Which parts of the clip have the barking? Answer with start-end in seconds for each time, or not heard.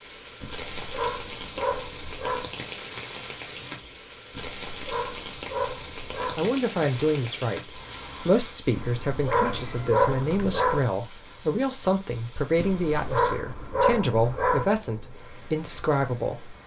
0.4-2.5, 4.3-6.5, 8.7-10.8, 12.6-14.7.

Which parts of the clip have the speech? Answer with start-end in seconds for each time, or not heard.
6.3-16.6.